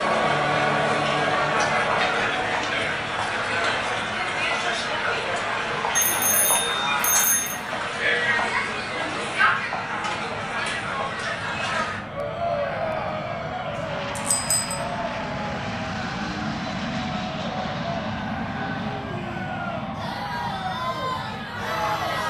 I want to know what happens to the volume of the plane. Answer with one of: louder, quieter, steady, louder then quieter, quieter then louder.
louder.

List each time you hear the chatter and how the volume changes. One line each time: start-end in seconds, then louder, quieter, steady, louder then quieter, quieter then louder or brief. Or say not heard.
0.0-22.2 quieter.